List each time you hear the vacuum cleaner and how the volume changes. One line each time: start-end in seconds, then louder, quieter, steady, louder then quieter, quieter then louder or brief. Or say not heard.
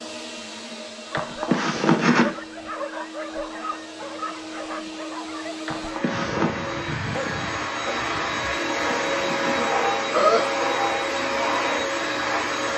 0.0-12.7 louder.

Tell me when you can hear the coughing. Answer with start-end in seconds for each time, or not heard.
1.1-2.3, 5.7-6.7, 8.5-10.7.